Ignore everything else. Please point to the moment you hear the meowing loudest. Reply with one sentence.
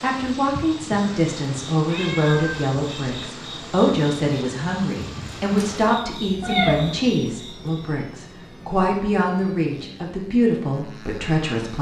The loudest moment of the meowing is at 7 seconds.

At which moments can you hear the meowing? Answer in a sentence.
You can hear the meowing from 1.9 to 3.3 s and from 6.4 to 7.0 s.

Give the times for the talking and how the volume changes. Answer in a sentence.
The talking can be heard from 0.0 to 11.7 s, at a steady volume.